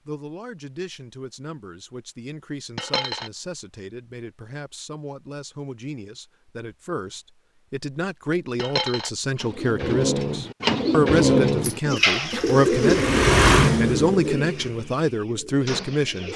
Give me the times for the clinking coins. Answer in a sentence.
You can hear the clinking coins from 2.8 to 3.3 s, from 8.6 to 9.1 s and from 11.3 to 12.7 s.